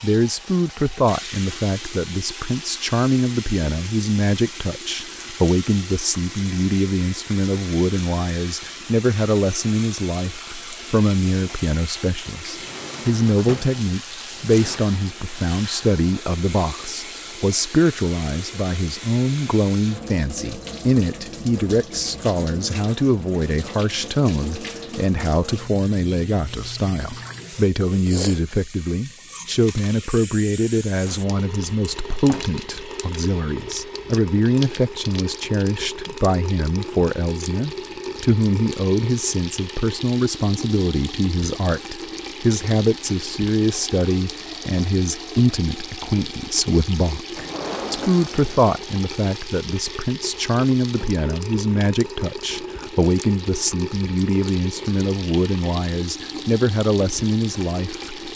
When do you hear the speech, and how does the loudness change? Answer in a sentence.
You can hear the speech from 0.0 to 58.3 s, at a steady volume.